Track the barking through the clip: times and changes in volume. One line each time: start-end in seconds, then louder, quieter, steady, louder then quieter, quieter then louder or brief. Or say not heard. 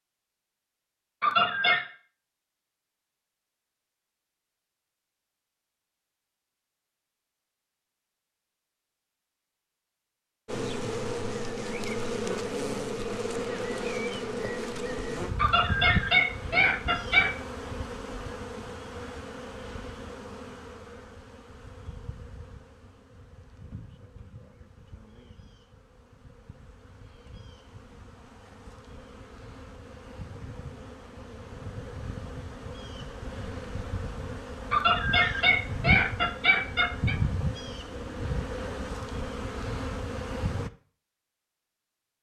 not heard.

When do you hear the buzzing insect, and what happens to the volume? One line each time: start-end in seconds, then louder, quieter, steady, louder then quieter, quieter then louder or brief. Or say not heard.
10.4-40.7 quieter then louder.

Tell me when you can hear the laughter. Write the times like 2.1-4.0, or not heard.
1.2-1.9, 15.3-17.4, 34.7-37.1.